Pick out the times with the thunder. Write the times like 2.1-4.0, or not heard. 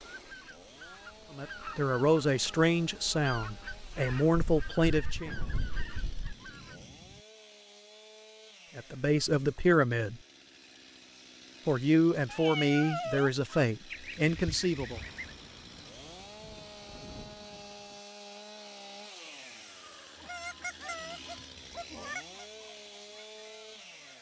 5.2-7.2, 14.9-18.0.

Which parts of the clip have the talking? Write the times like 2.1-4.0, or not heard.
1.4-5.3, 8.8-10.2, 11.7-15.0.